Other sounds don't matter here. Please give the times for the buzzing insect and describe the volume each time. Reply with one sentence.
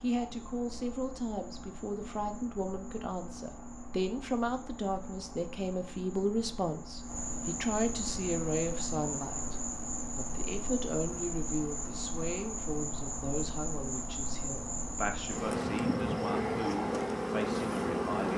You can hear the buzzing insect from 0.0 to 18.3 s, getting louder.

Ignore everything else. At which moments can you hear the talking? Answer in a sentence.
The talking can be heard from 0.0 to 18.3 s.